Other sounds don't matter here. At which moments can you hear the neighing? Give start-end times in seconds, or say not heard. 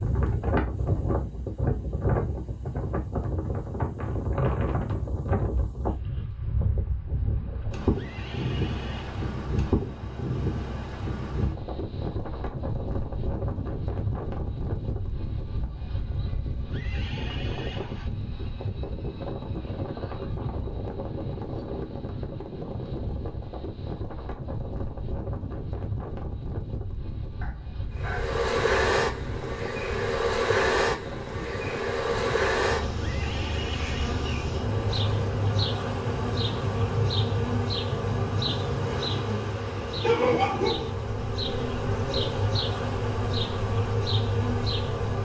8.0-9.2, 16.7-18.1, 33.0-34.2.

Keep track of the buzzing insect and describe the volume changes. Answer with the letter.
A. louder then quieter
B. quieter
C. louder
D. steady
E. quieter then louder
D.